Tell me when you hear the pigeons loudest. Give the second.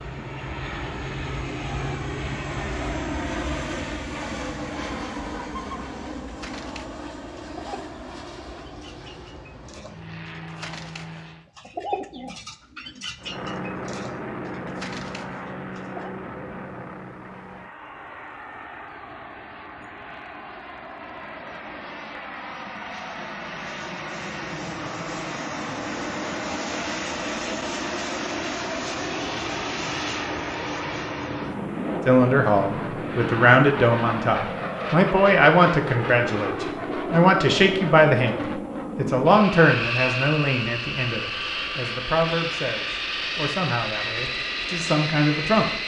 12 s.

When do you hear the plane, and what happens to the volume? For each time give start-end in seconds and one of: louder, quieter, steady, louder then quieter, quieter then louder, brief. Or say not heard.
0.0-11.5 quieter
13.2-45.8 louder.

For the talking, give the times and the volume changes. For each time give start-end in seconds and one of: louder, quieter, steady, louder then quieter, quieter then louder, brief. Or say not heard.
32.0-45.7 quieter.